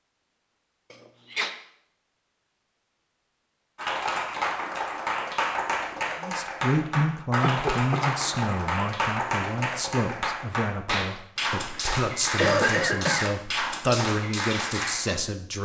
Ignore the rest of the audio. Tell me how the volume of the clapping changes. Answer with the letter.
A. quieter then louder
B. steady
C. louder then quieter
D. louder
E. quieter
B.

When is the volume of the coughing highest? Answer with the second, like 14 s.
13 s.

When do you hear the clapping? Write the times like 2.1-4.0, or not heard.
3.8-15.2.